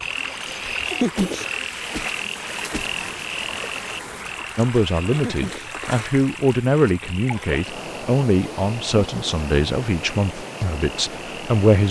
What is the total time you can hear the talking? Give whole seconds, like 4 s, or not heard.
7 s.